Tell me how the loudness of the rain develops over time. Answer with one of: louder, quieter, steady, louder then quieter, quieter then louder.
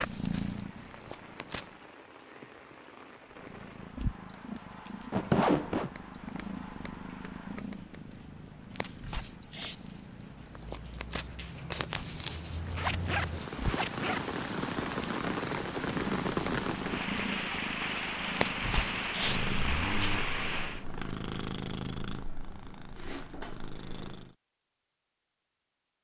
louder.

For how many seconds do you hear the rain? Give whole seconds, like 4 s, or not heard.
21 s.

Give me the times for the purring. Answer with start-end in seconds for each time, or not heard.
0.0-1.8, 3.3-24.4.